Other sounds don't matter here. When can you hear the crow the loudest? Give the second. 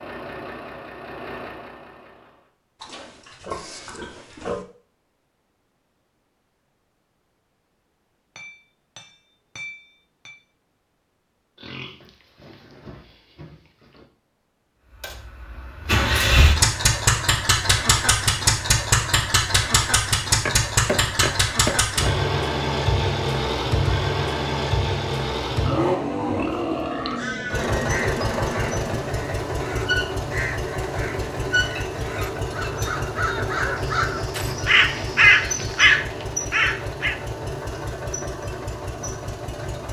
35 s.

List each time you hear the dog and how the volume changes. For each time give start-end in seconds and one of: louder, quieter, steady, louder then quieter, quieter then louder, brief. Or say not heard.
not heard.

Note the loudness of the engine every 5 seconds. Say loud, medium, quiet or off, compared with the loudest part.
quiet, off, off, loud, loud, loud, medium, medium.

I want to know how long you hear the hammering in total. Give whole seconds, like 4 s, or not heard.
4 s.